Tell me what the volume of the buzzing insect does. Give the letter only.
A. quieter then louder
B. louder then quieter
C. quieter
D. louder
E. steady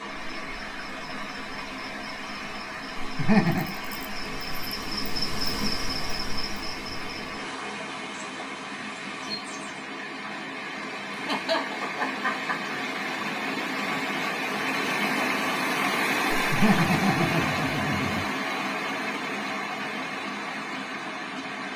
B.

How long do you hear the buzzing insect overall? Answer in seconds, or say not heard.
10 s.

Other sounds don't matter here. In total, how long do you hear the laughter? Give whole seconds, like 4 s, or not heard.
4 s.